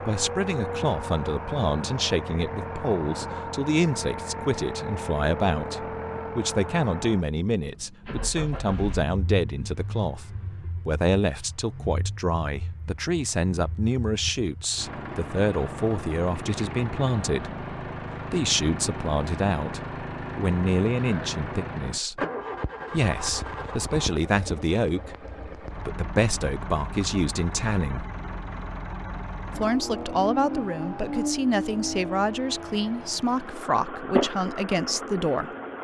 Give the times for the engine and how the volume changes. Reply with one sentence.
You can hear the engine from 0.0 to 35.7 s, getting quieter then louder.